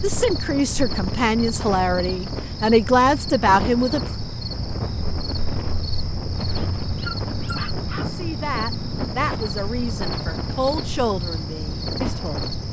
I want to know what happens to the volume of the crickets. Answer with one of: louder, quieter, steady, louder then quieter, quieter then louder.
steady.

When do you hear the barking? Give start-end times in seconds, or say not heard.
6.5-8.1.